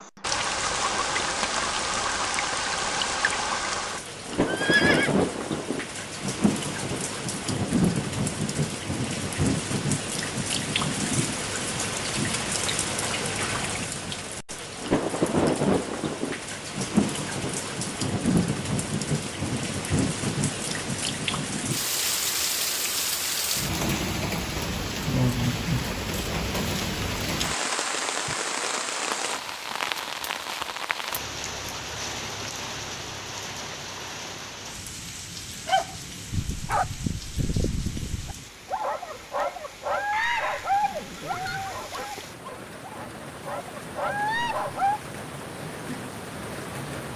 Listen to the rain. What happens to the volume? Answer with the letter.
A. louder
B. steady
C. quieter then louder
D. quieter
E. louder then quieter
D.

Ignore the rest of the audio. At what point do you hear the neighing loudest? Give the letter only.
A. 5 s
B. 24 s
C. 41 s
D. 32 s
A.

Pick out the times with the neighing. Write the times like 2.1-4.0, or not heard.
4.5-5.1, 40.1-41.7.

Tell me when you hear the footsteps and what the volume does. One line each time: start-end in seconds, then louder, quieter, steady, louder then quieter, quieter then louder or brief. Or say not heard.
not heard.